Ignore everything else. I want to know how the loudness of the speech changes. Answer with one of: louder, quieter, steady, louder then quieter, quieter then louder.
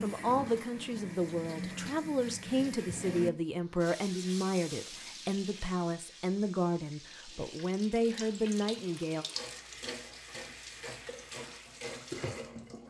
steady.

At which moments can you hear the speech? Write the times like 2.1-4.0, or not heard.
0.0-9.2.